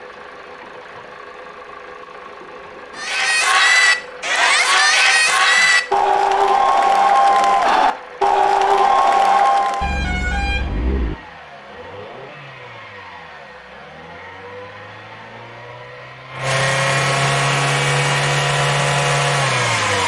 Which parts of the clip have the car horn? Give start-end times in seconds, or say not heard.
9.8-11.2.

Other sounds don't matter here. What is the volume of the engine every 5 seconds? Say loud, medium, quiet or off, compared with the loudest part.
quiet, quiet, quiet, loud.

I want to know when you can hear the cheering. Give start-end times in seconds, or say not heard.
3.0-10.0.